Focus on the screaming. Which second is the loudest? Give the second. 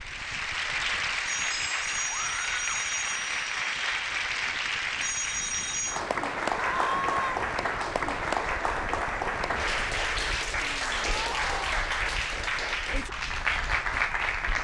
7 s.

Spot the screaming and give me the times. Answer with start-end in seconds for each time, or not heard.
2.1-2.5, 6.5-7.5, 11.1-11.8.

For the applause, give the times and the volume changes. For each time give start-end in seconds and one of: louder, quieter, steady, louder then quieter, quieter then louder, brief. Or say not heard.
0.0-14.5 steady.